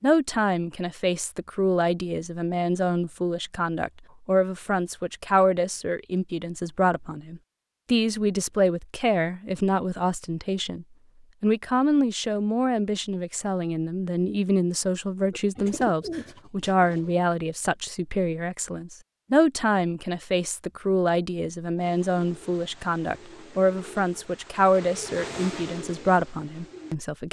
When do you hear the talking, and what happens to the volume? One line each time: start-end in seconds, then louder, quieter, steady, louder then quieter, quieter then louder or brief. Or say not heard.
0.0-27.2 steady.